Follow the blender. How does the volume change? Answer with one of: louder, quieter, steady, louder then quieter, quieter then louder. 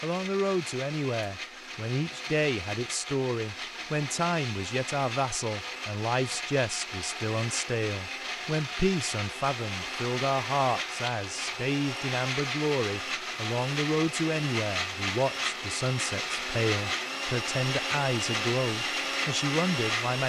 louder.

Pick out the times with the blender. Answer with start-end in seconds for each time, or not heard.
0.0-20.2.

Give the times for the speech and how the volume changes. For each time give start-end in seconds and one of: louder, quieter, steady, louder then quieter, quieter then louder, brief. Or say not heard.
0.0-20.2 steady.